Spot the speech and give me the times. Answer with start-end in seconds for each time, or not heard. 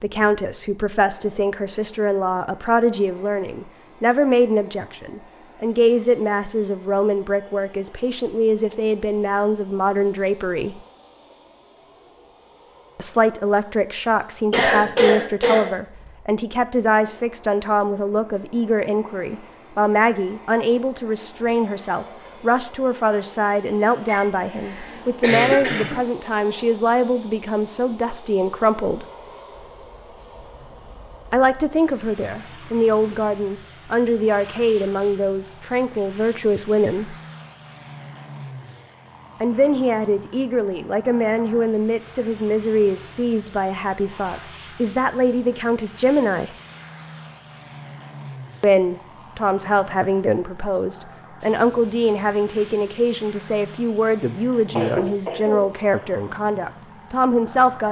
0.0-10.8, 12.9-29.1, 31.3-37.1, 39.4-46.5, 48.6-57.8.